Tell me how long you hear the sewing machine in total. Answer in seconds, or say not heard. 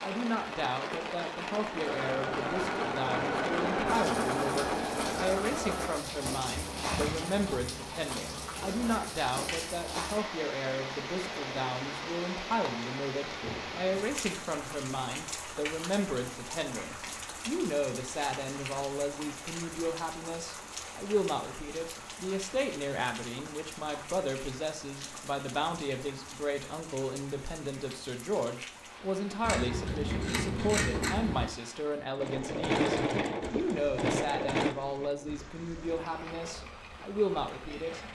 13 s.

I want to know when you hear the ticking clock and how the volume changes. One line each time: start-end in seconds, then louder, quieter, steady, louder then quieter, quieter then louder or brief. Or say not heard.
not heard.